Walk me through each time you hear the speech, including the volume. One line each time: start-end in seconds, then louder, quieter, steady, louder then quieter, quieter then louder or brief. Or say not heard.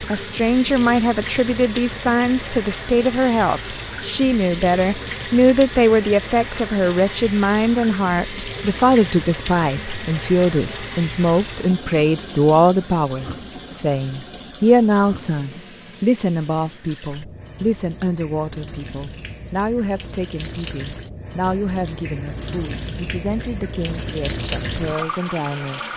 0.0-25.9 quieter.